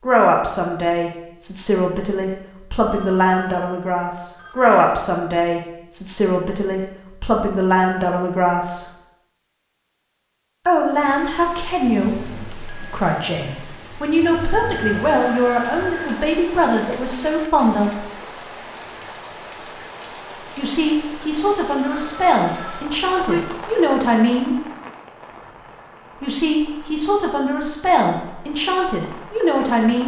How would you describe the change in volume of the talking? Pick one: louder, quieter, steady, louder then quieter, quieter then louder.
steady.